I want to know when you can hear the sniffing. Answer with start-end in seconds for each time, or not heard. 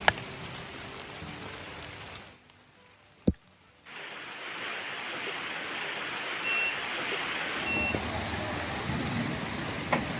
not heard.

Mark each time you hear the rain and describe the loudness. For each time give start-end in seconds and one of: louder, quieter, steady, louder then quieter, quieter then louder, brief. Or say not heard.
0.0-10.1 louder.